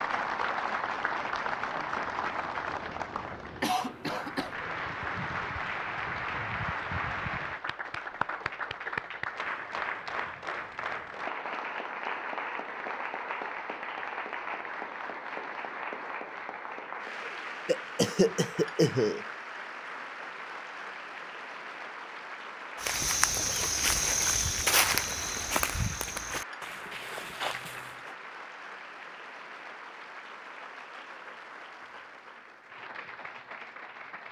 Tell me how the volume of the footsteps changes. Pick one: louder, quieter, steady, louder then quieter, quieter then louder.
quieter.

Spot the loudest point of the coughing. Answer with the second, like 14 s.
19 s.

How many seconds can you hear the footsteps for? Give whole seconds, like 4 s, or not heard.
5 s.